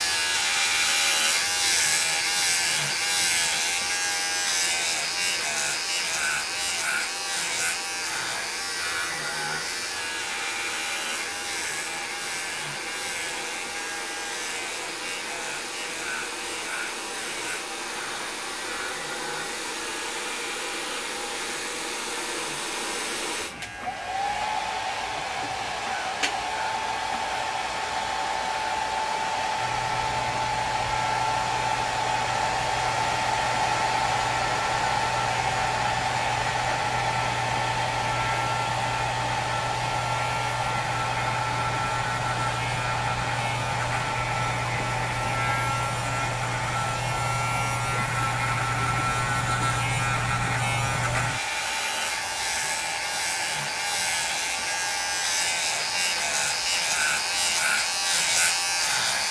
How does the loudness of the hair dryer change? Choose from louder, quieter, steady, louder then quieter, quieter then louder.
louder then quieter.